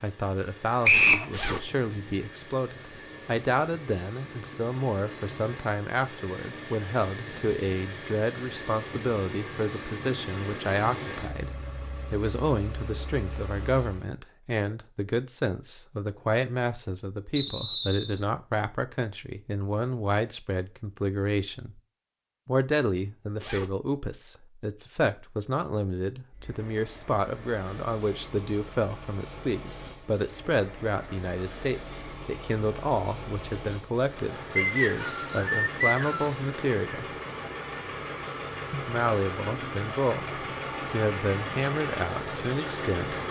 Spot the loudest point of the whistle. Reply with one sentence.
The volume of the whistle peaks at 1 second.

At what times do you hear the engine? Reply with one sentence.
You can hear the engine from 0.0 to 14.1 s and from 26.3 to 43.2 s.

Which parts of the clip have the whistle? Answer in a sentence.
The whistle can be heard from 0.8 to 1.2 s, from 17.4 to 18.2 s and from 34.5 to 36.4 s.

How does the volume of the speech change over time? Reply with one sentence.
The loudness of the speech stays about the same.